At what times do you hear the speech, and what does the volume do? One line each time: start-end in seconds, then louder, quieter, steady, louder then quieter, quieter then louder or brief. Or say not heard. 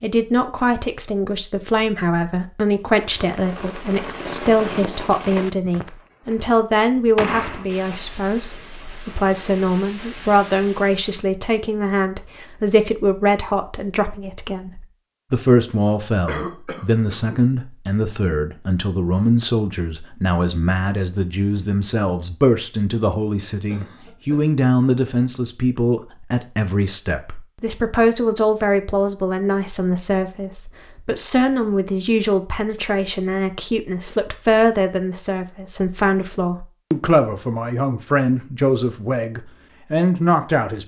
0.0-40.8 steady.